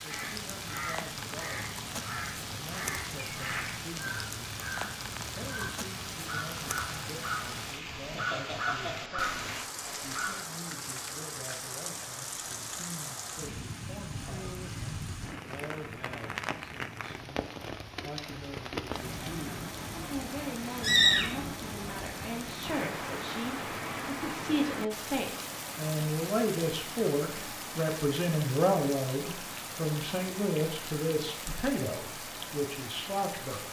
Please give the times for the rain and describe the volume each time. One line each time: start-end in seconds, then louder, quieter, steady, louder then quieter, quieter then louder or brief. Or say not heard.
0.0-33.6 steady.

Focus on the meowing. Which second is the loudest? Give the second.
21 s.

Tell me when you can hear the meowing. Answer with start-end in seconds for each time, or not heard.
3.3-3.7, 20.8-21.5.